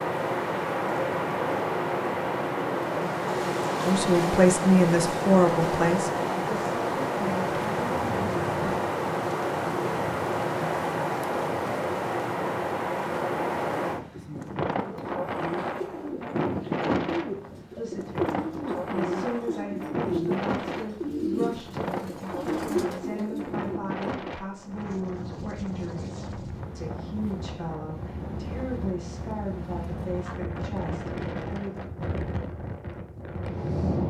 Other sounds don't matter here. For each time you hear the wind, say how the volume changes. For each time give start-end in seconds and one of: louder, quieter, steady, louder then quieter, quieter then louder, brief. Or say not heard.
0.0-34.0 quieter.